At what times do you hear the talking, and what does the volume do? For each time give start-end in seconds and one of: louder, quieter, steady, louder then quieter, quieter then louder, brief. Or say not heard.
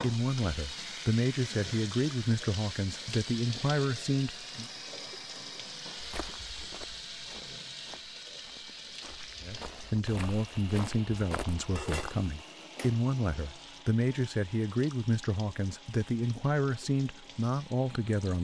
0.0-4.7 steady
9.4-18.3 steady.